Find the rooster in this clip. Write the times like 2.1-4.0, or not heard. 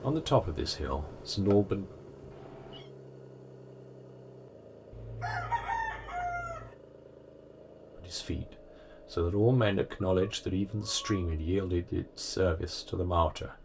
5.2-6.7.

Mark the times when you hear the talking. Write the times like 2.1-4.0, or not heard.
0.0-1.9, 8.0-13.6.